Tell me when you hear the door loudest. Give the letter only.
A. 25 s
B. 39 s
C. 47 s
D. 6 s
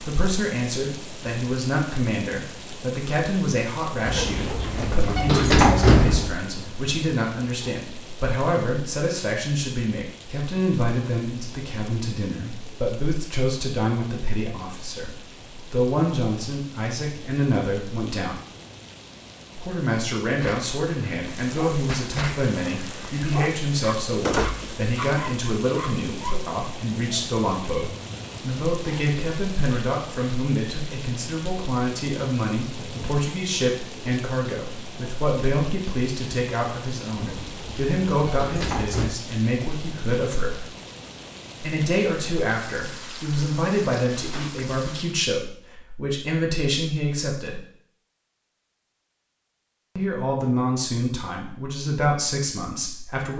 D.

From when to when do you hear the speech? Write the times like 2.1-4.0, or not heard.
0.0-18.4, 19.6-40.6, 41.6-47.6, 50.0-53.3.